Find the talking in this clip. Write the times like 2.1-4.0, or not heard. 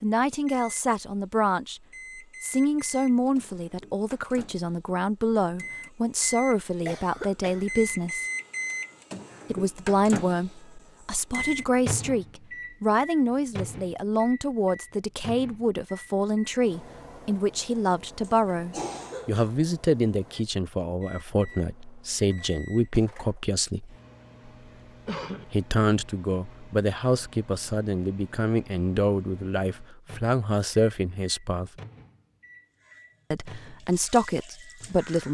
0.0-1.8, 2.4-8.2, 9.5-23.9, 25.4-31.7, 33.3-35.2.